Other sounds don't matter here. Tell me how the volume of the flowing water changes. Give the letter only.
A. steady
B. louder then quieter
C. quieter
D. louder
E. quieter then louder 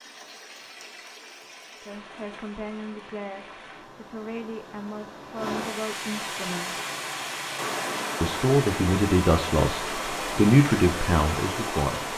D.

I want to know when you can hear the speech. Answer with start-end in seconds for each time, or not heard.
1.8-6.7, 8.2-12.1.